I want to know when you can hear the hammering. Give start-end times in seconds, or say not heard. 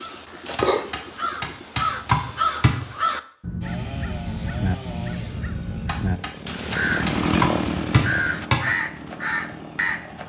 0.6-2.8, 5.8-8.7.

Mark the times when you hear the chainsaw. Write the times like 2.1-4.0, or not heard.
3.6-10.2.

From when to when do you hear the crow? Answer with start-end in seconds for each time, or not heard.
0.0-10.2.